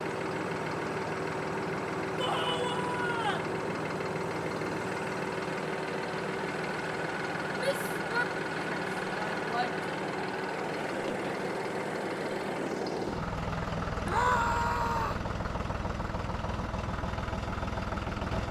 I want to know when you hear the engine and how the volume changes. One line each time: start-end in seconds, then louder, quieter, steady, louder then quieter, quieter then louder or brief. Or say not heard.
0.0-18.4 steady.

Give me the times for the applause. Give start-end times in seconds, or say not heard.
not heard.